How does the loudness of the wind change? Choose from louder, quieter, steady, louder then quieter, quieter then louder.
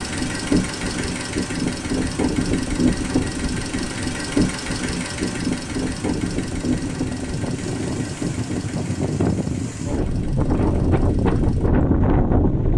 louder.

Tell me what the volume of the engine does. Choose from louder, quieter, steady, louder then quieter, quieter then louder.
quieter.